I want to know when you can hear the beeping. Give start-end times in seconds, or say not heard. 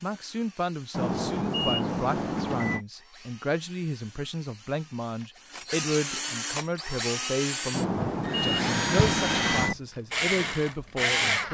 0.9-2.9, 7.7-9.8.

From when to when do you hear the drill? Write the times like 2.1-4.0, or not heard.
0.0-11.4.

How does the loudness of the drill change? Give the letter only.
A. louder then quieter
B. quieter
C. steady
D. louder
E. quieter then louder
D.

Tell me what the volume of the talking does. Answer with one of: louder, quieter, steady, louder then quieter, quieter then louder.
steady.